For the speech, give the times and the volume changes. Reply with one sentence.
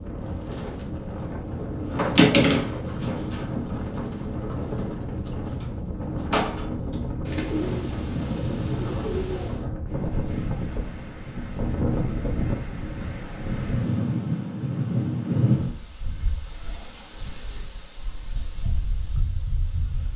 The speech can't be heard in this clip.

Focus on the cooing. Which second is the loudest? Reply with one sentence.
The loudest moment of the cooing is at 2 seconds.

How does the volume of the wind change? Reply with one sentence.
The loudness of the wind goes up, then down.